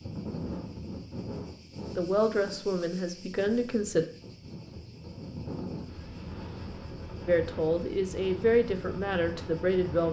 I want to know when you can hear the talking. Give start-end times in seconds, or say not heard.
1.9-4.0, 7.2-10.0.